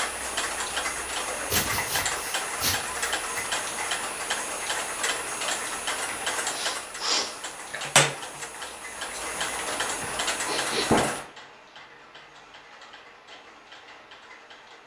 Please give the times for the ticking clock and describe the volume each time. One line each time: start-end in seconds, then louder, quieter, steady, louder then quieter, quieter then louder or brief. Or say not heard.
0.0-14.8 quieter.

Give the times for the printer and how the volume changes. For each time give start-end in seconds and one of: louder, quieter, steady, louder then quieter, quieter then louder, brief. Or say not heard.
not heard.